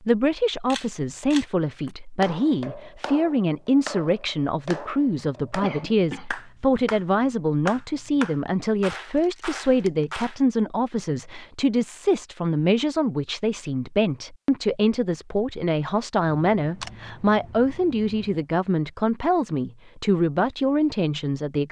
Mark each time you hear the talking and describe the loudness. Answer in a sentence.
The talking can be heard from 0.0 to 21.6 s, at a steady volume.